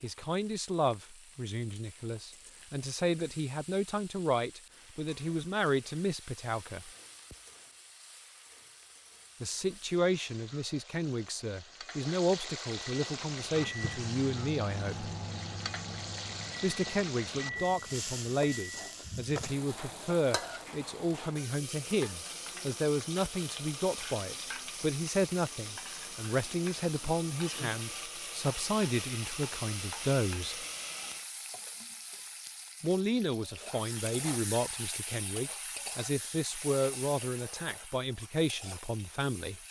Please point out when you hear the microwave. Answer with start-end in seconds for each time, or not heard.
12.9-19.0.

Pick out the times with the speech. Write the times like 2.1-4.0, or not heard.
0.0-6.9, 9.4-15.1, 16.6-30.6, 32.8-39.6.